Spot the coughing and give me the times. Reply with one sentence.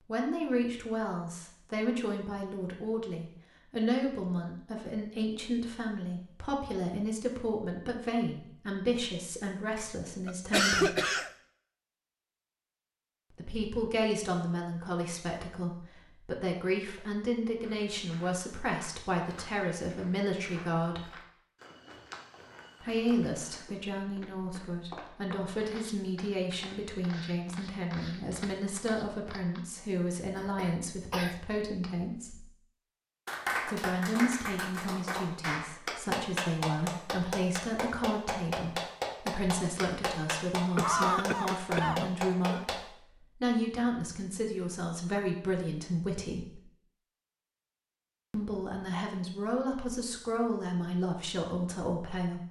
You can hear the coughing from 9.8 to 11.3 s, from 30.4 to 31.4 s and from 40.8 to 42.6 s.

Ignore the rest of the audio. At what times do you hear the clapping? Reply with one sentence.
The clapping can be heard from 33.2 to 42.8 s.